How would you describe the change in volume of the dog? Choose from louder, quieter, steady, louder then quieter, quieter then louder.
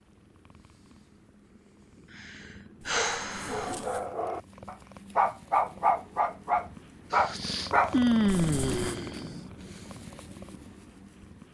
louder.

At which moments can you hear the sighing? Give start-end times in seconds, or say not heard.
2.1-3.8, 7.1-9.4.